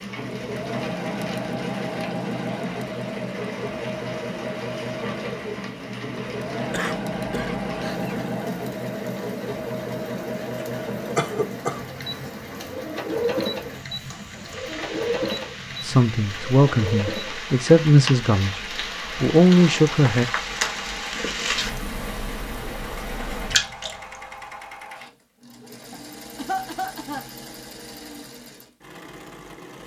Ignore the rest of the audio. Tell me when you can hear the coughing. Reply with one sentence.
You can hear the coughing from 6.7 to 8.2 s, from 11.2 to 11.8 s and from 25.9 to 27.2 s.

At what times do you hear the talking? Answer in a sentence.
The talking can be heard from 15.8 to 18.6 s and from 19.2 to 20.2 s.